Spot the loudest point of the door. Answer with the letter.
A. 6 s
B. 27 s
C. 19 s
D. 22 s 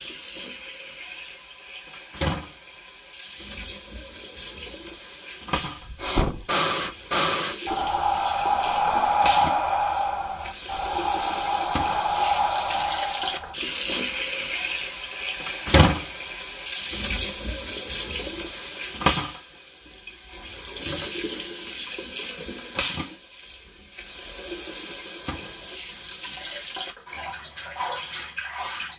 A.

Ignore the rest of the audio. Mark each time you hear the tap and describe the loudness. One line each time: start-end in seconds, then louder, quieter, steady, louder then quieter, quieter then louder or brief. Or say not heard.
0.0-28.9 louder then quieter.